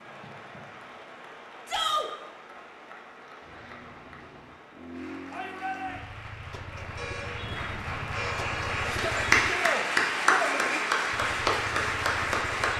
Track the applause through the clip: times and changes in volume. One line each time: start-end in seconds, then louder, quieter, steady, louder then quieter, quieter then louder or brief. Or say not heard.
0.0-12.7 louder.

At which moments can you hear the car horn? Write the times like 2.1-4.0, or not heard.
3.4-4.6, 7.0-8.9.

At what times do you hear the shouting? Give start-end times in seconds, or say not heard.
1.6-2.1, 5.3-6.0, 8.9-10.8.